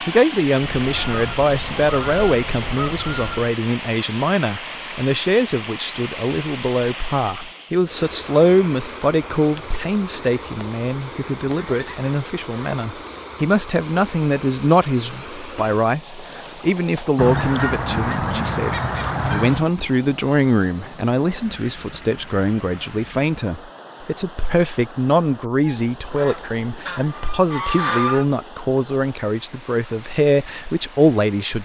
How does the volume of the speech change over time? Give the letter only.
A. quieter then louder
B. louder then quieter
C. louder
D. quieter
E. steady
E.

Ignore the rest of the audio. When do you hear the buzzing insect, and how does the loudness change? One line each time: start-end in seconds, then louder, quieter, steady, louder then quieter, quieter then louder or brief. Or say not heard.
not heard.